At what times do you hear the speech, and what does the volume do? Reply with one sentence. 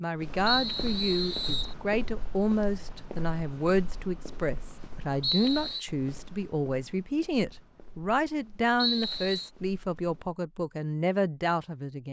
You can hear the speech from 0.0 to 12.0 s, at a steady volume.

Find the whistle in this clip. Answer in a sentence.
The whistle can be heard from 0.5 to 1.8 s, from 5.2 to 5.8 s and from 8.8 to 9.5 s.